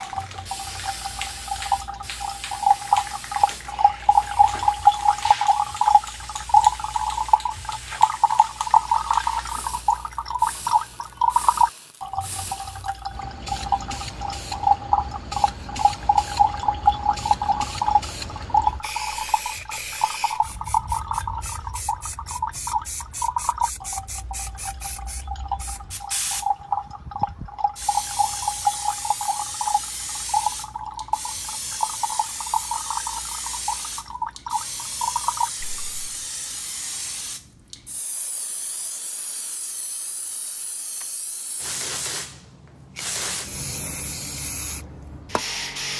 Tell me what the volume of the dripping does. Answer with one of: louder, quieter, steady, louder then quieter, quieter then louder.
quieter.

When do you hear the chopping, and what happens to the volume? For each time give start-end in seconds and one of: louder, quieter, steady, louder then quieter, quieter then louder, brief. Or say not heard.
not heard.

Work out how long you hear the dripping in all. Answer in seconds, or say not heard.
36 s.